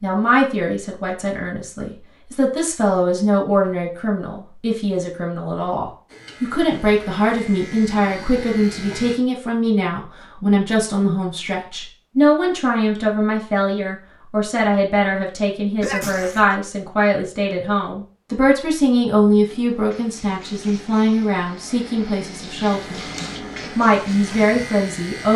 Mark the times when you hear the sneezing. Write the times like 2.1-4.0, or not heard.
15.8-16.6.